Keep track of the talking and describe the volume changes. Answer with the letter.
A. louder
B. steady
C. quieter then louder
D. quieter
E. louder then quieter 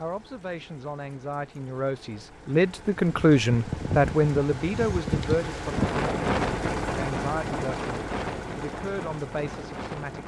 E.